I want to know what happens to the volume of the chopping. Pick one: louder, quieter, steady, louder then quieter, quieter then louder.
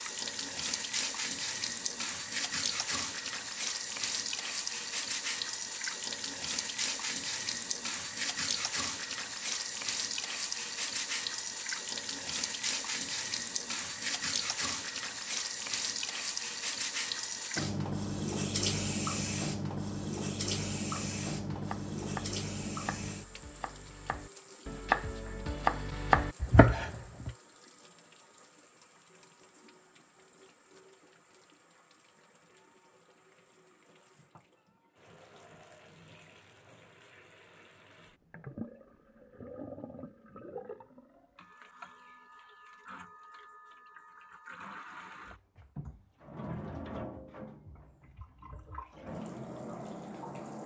quieter then louder.